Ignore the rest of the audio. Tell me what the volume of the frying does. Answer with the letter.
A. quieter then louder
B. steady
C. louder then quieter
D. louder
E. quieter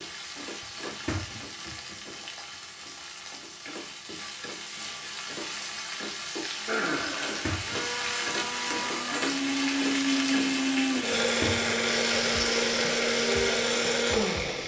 D.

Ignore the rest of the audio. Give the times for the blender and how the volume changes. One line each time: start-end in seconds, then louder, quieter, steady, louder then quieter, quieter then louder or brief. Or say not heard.
6.7-14.6 louder.